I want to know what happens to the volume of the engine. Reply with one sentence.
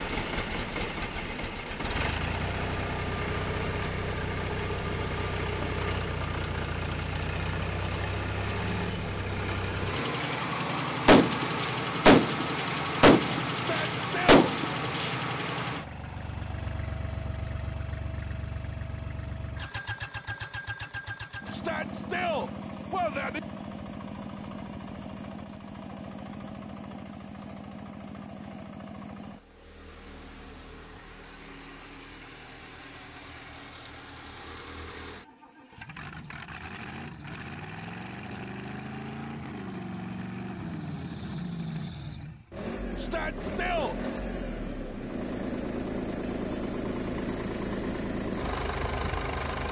The loudness of the engine goes down, then up.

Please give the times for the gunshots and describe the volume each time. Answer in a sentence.
The gunshots can be heard from 11.1 to 15.2 s, getting quieter then louder.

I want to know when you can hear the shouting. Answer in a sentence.
You can hear the shouting from 13.6 to 14.4 s, from 21.5 to 23.4 s and from 43.0 to 44.0 s.